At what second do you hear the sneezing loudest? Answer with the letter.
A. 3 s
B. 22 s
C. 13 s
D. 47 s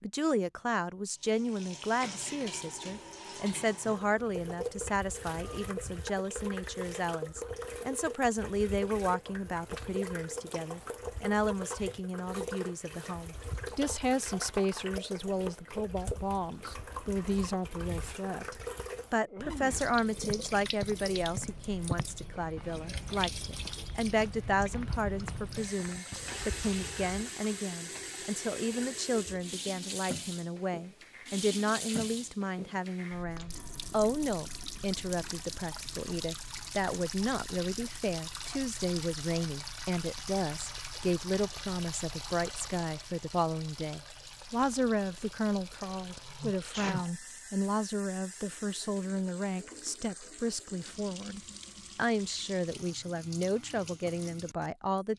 D.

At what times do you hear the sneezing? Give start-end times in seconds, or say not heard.
11.7-12.1, 19.2-19.9, 45.9-47.1.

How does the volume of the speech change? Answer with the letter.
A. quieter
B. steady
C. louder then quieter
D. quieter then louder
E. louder
B.